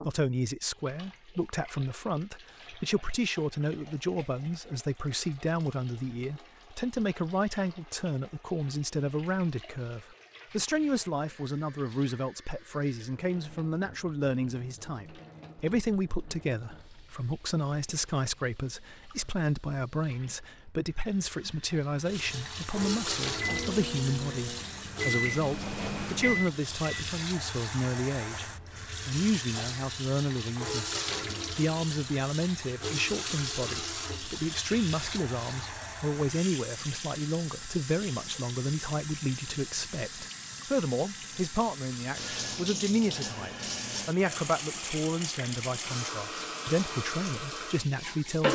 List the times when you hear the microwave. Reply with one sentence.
You can hear the microwave from 23.2 to 27.2 s.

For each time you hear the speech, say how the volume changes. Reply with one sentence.
You can hear the speech from 0.0 to 48.5 s, at a steady volume.